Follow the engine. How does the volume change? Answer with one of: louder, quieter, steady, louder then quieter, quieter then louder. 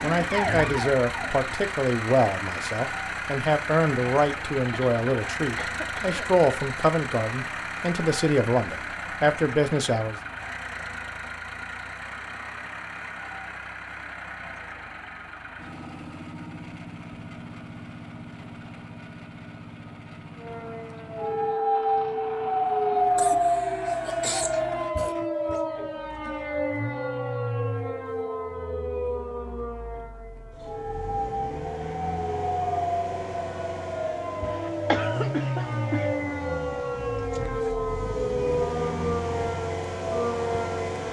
quieter then louder.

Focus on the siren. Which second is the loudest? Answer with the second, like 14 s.
23 s.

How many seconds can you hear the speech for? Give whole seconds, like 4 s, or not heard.
10 s.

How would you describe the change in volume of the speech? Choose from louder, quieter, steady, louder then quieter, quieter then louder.
steady.